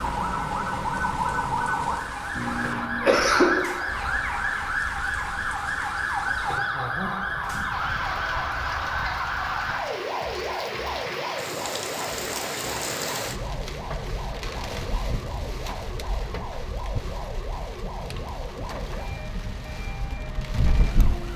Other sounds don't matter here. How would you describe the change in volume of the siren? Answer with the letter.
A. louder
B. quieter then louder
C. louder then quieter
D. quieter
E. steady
D.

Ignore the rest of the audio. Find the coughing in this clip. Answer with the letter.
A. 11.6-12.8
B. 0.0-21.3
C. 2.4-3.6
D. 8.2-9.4
C.